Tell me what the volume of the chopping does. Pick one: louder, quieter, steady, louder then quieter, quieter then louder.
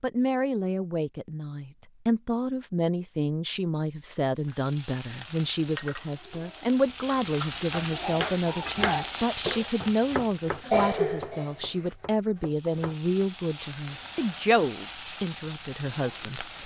quieter.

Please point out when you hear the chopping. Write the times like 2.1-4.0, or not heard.
7.7-12.9.